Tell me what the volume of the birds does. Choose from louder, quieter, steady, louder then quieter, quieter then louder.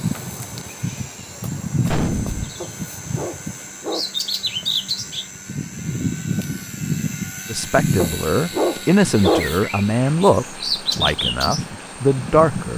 steady.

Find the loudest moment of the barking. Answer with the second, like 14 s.
9 s.